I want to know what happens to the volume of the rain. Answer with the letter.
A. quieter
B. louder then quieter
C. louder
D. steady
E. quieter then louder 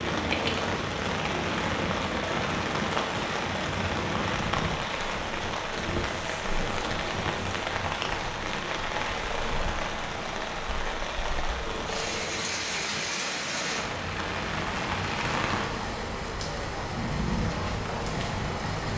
D.